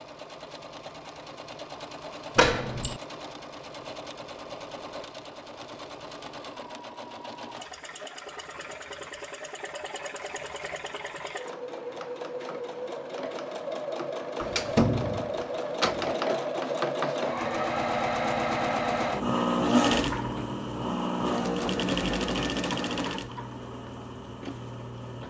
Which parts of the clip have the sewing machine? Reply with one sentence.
You can hear the sewing machine from 0.0 to 25.2 s.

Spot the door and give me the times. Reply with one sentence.
You can hear the door from 2.4 to 3.0 s and from 14.4 to 16.1 s.